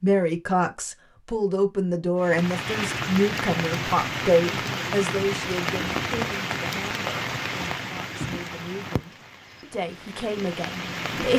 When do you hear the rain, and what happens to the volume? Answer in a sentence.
The rain can be heard from 2.2 to 11.3 s, getting quieter.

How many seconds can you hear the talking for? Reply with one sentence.
You can hear the talking for 11 seconds altogether.